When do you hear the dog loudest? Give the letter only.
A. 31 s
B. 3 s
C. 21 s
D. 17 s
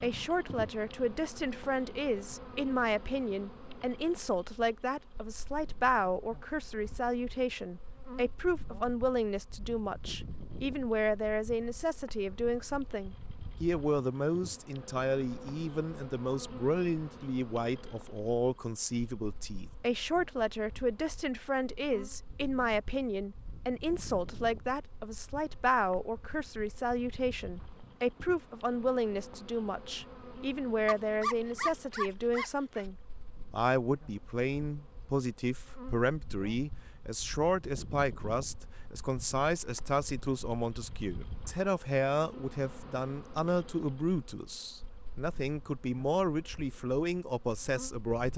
A.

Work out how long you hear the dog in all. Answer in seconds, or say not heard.
2 s.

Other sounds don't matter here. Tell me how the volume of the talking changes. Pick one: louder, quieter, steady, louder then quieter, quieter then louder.
steady.